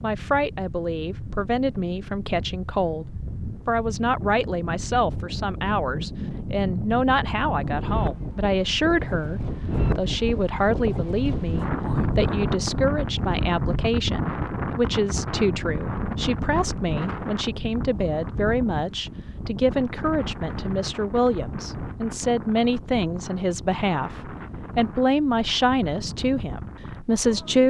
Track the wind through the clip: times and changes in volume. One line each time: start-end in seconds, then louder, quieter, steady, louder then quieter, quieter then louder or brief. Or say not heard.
0.0-27.6 louder then quieter.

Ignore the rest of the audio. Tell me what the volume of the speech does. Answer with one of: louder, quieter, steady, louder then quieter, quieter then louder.
steady.